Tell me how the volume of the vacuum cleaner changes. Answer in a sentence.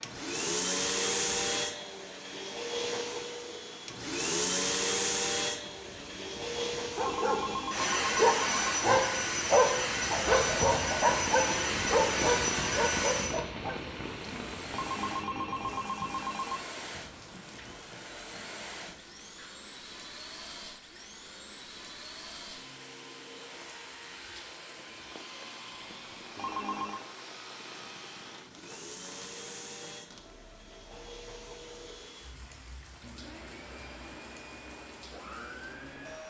The loudness of the vacuum cleaner goes down.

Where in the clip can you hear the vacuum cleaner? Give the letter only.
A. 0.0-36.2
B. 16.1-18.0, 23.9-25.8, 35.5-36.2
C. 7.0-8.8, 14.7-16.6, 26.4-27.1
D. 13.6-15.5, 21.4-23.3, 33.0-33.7
A.